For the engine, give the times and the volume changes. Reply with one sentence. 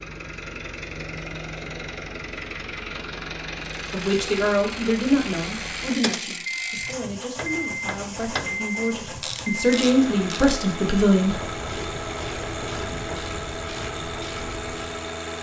You can hear the engine from 0.0 to 15.3 s, at a steady volume.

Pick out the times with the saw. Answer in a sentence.
The saw can't be heard in this clip.